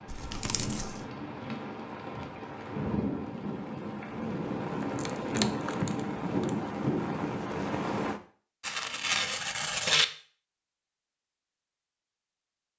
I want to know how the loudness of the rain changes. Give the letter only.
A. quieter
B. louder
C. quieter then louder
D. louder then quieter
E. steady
B.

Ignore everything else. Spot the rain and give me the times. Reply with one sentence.
You can hear the rain from 0.0 to 8.2 s.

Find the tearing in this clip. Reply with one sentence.
The tearing can be heard from 0.1 to 1.0 s, from 5.0 to 6.5 s and from 8.6 to 10.1 s.